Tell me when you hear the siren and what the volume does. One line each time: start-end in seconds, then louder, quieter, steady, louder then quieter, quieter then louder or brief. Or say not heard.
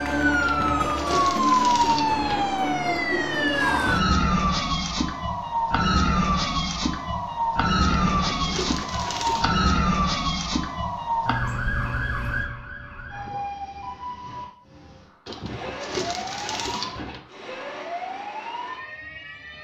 0.0-19.5 quieter.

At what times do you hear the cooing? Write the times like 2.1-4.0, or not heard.
0.4-2.5, 7.8-9.7, 15.2-17.2.